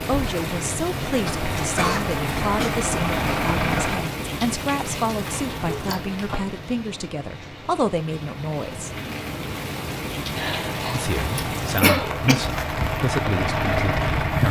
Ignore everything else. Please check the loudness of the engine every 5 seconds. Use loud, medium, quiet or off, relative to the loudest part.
loud, off, loud.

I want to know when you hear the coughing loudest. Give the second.
12 s.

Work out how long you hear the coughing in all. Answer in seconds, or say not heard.
4 s.